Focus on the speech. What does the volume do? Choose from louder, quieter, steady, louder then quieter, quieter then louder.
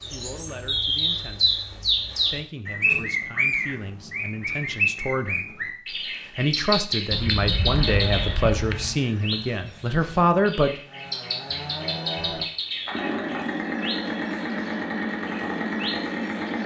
louder.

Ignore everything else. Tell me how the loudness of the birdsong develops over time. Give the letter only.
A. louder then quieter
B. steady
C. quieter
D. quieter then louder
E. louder
C.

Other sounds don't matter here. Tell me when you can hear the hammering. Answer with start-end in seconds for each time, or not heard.
not heard.